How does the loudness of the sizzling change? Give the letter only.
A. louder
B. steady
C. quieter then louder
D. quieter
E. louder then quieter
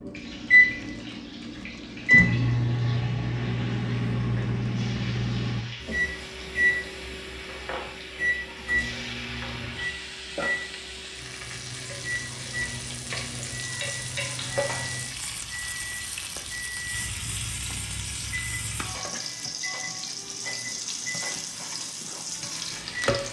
A.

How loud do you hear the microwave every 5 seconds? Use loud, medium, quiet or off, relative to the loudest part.
loud, medium, quiet, quiet, quiet.